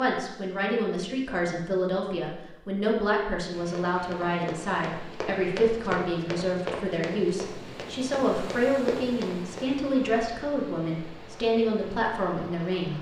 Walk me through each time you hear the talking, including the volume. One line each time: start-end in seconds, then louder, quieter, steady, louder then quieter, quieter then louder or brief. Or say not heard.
0.0-12.9 steady.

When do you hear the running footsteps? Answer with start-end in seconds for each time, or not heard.
3.6-9.7.